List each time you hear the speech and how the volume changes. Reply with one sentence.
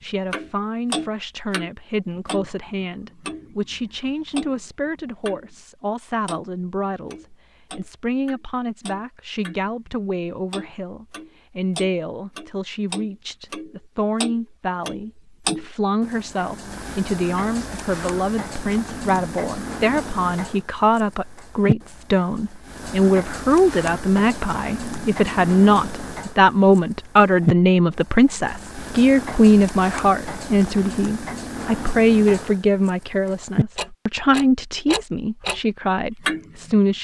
The speech can be heard from 0.0 to 36.9 s, getting louder.